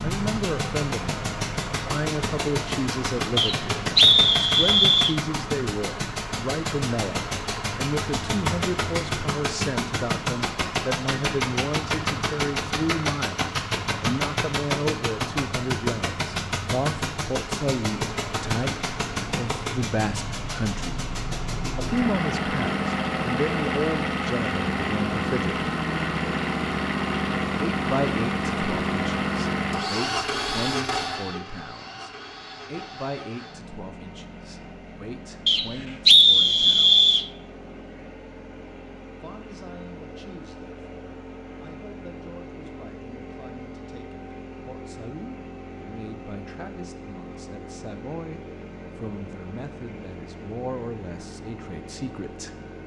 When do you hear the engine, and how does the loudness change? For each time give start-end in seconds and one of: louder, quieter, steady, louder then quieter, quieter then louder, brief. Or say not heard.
0.0-52.8 quieter.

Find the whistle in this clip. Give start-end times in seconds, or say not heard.
3.4-5.2, 35.5-37.2.